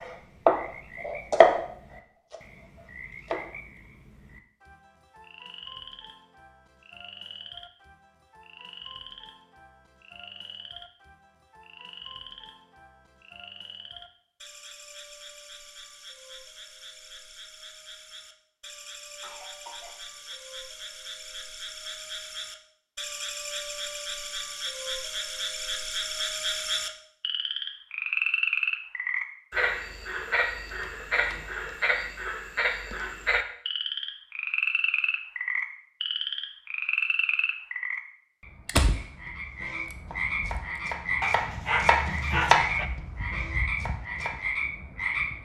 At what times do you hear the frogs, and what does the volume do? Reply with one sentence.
You can hear the frogs from 0.0 to 45.4 s, getting louder.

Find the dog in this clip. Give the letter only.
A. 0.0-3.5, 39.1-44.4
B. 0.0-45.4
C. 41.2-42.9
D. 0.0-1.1
C.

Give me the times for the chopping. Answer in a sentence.
The chopping can be heard from 0.0 to 3.5 s and from 39.1 to 44.4 s.